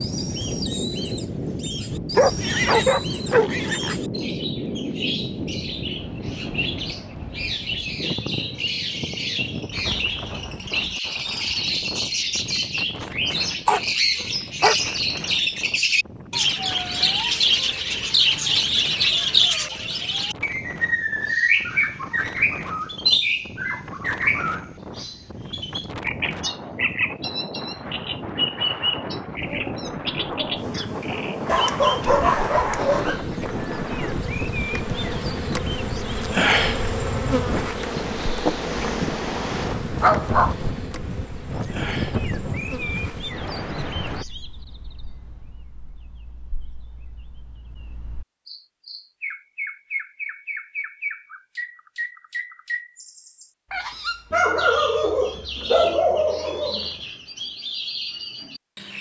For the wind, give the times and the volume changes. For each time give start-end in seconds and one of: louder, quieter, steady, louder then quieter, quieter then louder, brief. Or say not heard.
0.0-44.2 quieter then louder.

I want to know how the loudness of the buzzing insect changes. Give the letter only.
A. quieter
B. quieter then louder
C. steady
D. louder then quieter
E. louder
D.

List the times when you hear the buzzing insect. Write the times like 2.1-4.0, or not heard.
29.4-43.7.